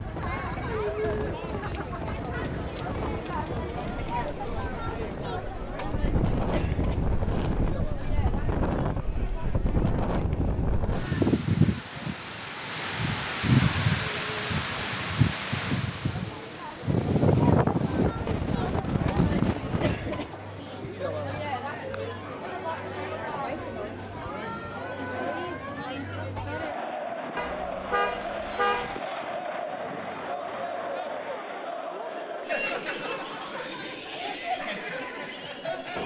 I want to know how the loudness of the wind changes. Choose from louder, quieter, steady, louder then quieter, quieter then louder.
louder.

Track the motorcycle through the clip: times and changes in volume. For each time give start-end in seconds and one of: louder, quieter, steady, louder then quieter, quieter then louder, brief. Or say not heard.
not heard.